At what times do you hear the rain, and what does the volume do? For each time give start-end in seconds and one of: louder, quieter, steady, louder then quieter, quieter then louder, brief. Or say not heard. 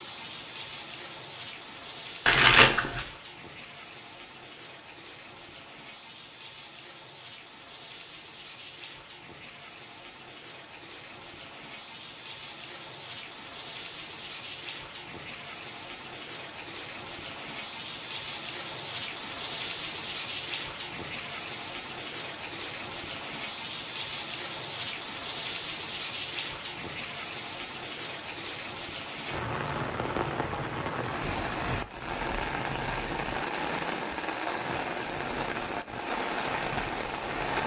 0.0-37.6 louder.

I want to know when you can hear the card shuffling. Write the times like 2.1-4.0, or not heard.
2.2-3.0, 29.3-31.3.